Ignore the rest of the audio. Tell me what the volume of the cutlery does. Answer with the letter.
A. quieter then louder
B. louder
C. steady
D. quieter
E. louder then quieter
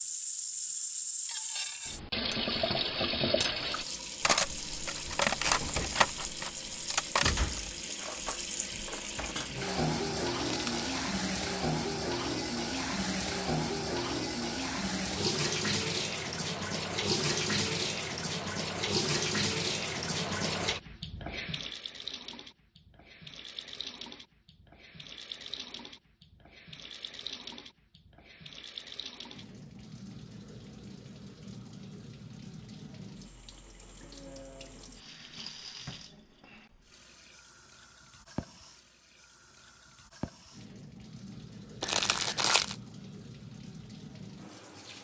E.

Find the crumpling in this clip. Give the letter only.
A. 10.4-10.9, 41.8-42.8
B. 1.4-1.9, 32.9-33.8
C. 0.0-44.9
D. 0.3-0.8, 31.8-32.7
A.